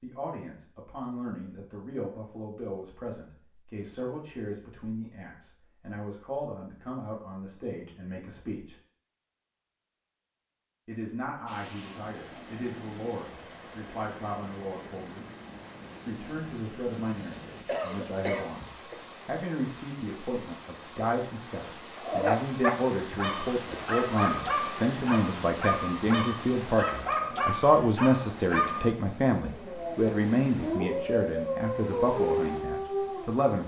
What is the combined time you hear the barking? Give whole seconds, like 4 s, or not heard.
11 s.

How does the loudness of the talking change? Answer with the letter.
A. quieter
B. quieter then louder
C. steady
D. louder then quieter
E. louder
E.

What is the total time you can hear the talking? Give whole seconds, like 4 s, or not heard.
31 s.